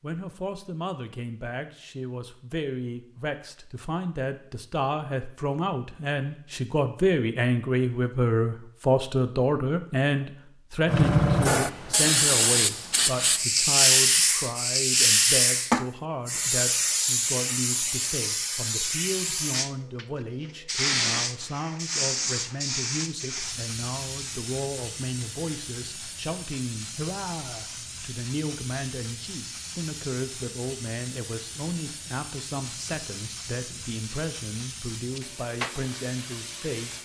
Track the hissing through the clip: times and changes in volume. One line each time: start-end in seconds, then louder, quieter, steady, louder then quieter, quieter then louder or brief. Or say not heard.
10.8-36.9 quieter.